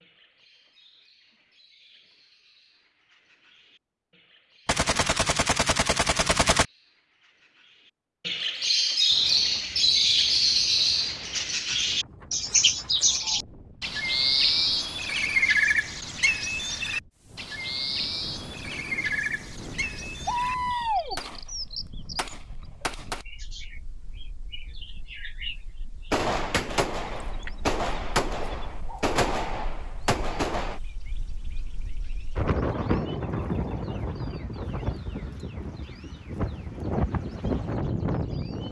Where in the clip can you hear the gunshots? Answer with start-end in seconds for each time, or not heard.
4.7-6.7, 20.2-23.2, 26.1-30.8.